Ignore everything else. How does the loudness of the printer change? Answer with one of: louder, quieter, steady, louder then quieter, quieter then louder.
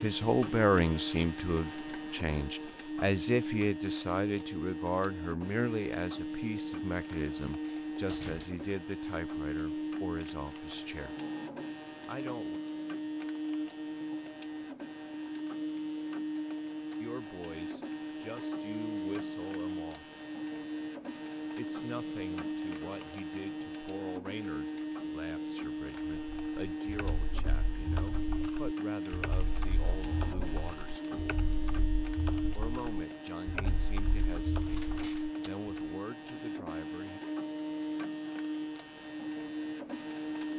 steady.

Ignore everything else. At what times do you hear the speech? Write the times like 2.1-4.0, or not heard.
0.0-11.2, 12.1-12.6, 17.0-20.1, 21.6-31.4, 32.5-37.2.